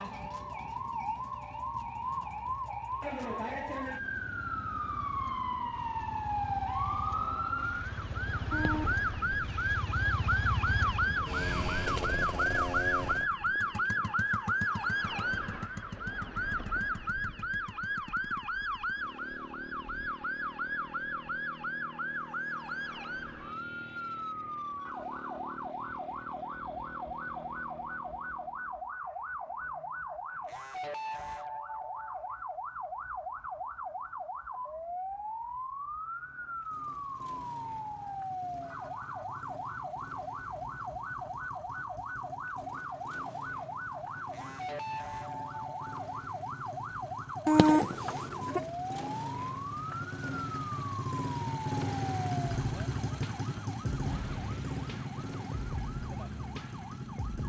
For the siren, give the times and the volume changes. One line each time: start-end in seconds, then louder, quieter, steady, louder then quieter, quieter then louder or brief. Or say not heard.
0.0-57.4 quieter.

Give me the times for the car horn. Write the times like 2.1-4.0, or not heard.
8.5-9.1, 47.5-48.6.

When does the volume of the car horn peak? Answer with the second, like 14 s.
48 s.